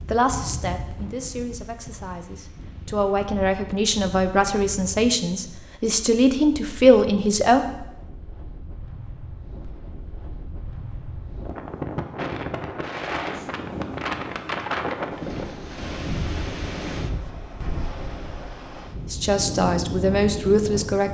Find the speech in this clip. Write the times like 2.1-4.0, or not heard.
0.1-7.7, 19.1-21.1.